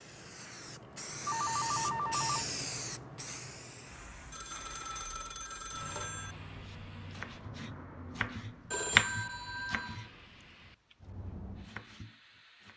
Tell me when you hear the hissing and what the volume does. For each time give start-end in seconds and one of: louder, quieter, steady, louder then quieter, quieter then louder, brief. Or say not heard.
0.0-12.7 quieter.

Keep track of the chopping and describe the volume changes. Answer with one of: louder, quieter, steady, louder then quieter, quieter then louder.
louder then quieter.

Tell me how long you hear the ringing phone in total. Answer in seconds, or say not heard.
5 s.